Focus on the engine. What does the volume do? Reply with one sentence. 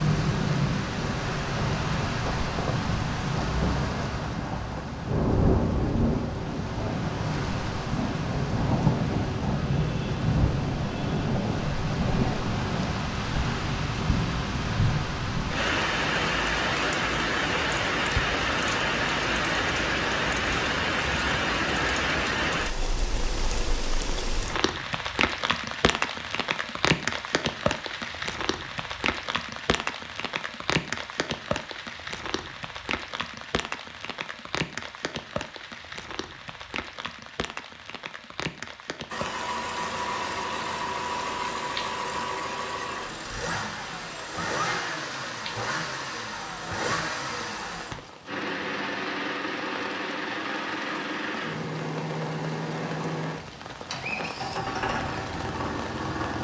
The volume of the engine stays about the same.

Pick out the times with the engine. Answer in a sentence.
You can hear the engine from 39.1 to 56.3 s.